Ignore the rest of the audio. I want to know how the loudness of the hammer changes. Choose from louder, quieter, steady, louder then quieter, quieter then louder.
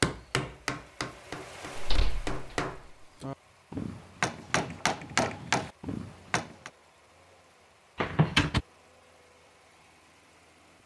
louder.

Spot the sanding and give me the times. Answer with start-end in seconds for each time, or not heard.
not heard.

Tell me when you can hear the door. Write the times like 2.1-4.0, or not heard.
1.8-2.6, 8.0-8.6.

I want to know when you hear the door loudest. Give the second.
8 s.